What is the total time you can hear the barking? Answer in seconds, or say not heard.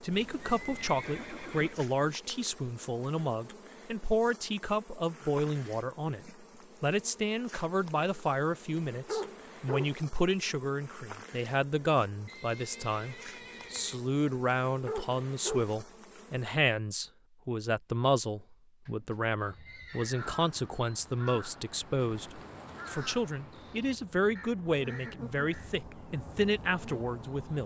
2 s.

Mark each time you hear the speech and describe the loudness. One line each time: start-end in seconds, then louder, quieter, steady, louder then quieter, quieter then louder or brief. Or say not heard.
0.0-27.6 steady.